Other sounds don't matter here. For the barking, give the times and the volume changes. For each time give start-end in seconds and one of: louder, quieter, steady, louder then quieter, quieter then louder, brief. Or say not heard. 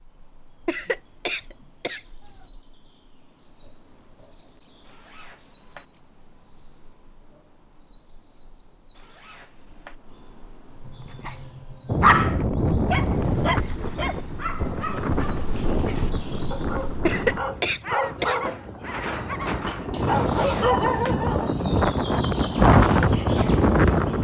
10.8-21.6 quieter then louder.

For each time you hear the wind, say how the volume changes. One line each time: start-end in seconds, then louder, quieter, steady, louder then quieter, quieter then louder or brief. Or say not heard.
11.8-24.1 quieter then louder.